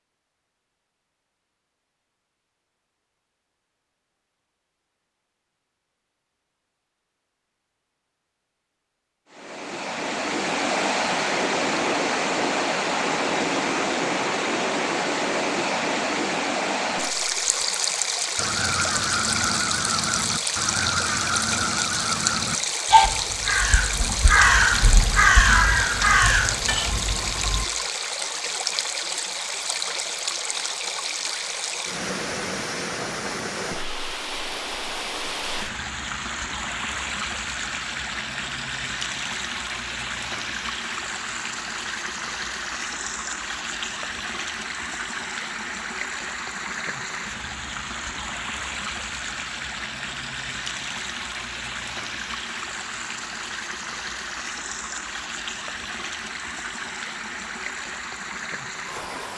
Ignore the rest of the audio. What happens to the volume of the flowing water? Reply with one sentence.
The loudness of the flowing water goes down.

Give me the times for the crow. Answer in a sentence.
You can hear the crow from 18.4 to 27.6 s.